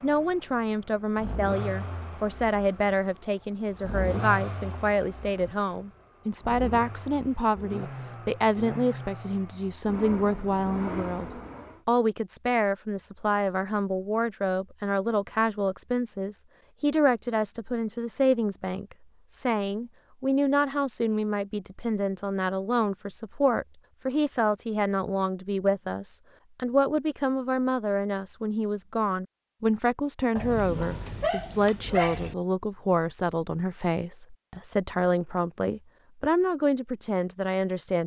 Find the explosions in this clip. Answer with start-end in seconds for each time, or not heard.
not heard.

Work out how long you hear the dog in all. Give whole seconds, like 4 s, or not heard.
2 s.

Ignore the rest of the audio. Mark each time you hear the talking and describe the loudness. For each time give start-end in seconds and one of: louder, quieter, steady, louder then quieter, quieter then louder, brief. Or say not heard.
0.0-38.0 steady.